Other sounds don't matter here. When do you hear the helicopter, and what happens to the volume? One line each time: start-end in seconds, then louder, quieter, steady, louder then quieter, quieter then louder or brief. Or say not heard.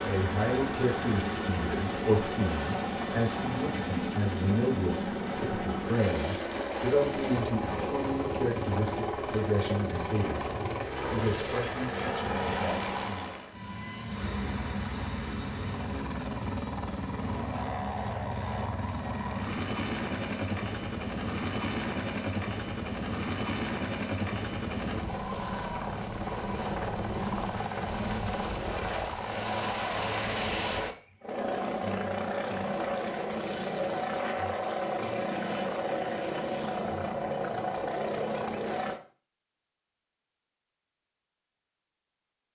0.0-39.0 steady.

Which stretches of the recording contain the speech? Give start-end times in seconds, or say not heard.
0.0-13.3.